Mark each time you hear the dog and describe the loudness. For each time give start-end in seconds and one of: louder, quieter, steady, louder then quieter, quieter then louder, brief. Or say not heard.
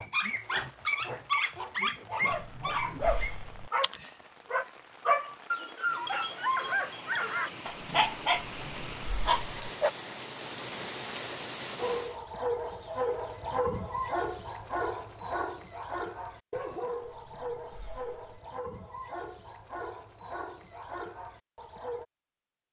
0.0-9.9 steady
11.8-22.1 quieter.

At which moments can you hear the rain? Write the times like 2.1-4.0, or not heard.
0.2-12.2.